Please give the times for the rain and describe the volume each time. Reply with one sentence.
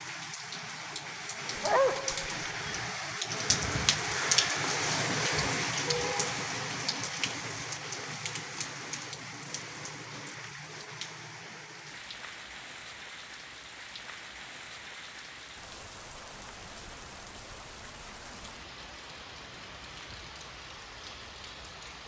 You can hear the rain from 0.0 to 22.0 s, getting quieter.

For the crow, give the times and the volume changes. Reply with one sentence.
You can't hear the crow here.